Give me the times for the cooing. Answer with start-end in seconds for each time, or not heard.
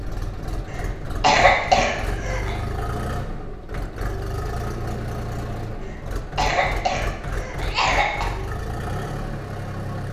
not heard.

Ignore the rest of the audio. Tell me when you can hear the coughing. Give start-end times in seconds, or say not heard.
0.7-2.5, 5.8-8.3.